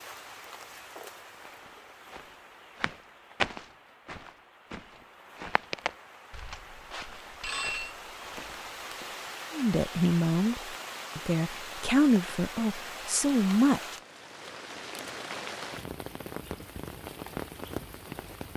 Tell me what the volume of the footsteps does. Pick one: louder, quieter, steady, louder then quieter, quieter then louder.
louder then quieter.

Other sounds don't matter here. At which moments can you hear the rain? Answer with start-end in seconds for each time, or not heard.
0.0-18.5.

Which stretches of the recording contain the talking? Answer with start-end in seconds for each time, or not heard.
9.5-13.9.